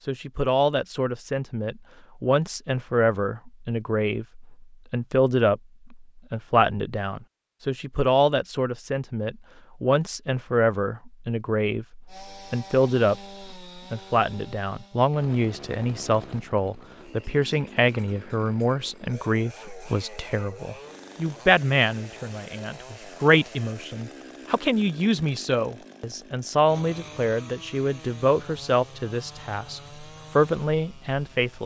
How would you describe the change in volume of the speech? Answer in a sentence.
The volume of the speech stays about the same.